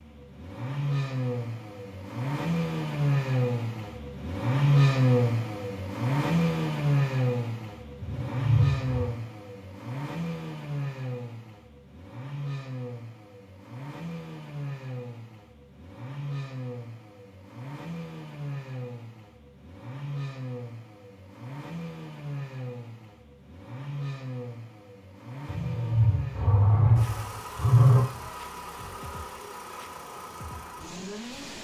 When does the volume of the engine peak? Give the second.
5 s.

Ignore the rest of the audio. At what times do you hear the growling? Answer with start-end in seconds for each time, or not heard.
8.0-9.2, 25.4-28.1.